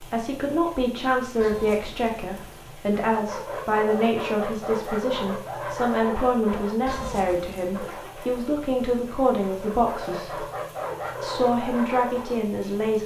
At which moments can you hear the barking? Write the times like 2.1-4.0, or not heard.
3.0-12.4.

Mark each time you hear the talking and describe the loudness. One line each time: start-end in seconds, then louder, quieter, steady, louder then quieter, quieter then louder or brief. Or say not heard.
0.0-10.4 steady
11.2-13.0 brief.